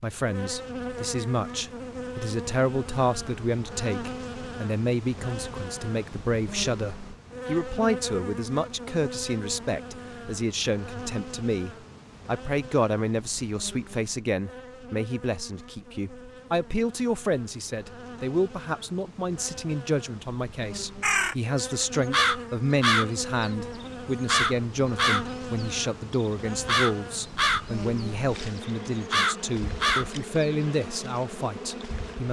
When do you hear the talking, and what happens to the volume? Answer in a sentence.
The talking can be heard from 0.0 to 32.2 s, at a steady volume.